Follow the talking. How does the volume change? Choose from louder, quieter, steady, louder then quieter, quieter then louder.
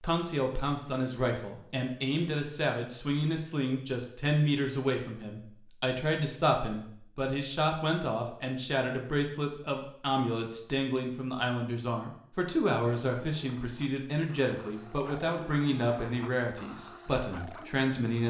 steady.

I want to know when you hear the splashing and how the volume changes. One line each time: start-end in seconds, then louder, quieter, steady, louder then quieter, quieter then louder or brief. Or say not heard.
not heard.